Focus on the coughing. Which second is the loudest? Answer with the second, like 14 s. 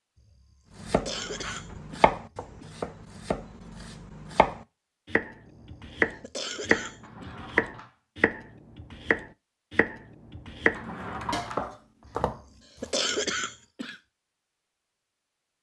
13 s.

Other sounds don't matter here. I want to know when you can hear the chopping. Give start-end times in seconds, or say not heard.
0.8-12.4.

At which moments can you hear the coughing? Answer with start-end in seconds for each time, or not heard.
0.1-2.7, 5.5-7.3, 12.1-14.0.